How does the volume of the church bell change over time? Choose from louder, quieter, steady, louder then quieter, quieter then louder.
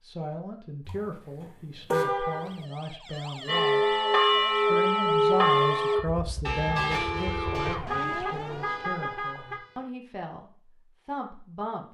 quieter.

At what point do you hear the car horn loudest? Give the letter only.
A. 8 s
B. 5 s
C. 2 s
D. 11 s
C.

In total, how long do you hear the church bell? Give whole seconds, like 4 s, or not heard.
4 s.